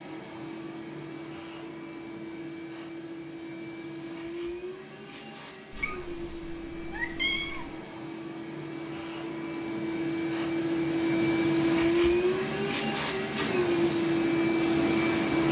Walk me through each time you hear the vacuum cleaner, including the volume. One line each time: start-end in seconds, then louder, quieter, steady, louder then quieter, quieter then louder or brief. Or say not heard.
0.0-15.4 louder.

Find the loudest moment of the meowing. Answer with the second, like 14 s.
7 s.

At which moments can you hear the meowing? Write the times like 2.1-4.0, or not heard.
5.7-7.7.